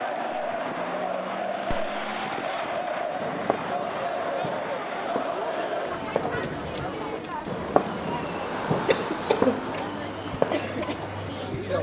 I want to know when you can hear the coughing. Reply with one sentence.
The coughing can be heard from 8.8 to 9.8 s.